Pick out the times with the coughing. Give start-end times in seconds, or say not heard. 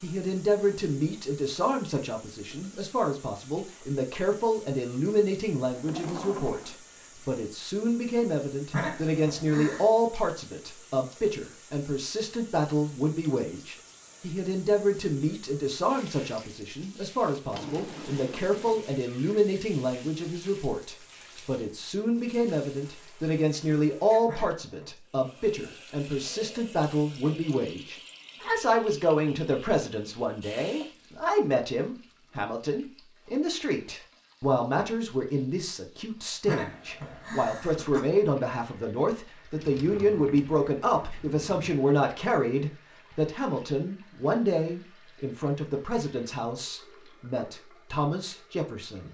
8.7-9.8, 24.2-24.9, 36.5-38.0.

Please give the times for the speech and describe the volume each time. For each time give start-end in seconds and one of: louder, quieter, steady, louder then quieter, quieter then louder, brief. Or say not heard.
0.0-49.1 steady.